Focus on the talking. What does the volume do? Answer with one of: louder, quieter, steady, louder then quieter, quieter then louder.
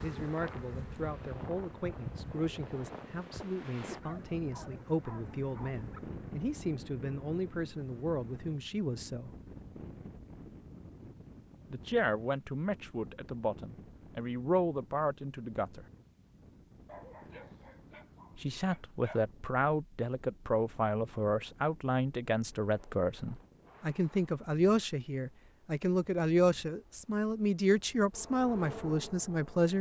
louder.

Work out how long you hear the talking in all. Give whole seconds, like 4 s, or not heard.
25 s.